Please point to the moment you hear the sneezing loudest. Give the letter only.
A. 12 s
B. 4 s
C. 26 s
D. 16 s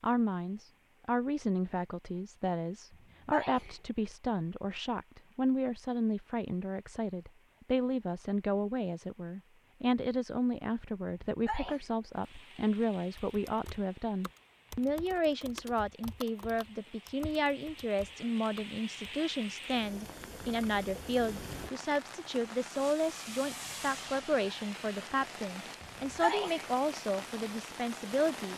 C.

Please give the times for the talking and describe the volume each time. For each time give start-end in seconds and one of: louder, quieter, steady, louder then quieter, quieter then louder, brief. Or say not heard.
0.0-28.5 steady.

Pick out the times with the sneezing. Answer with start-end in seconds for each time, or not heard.
2.9-3.8, 11.2-11.8, 25.8-26.7.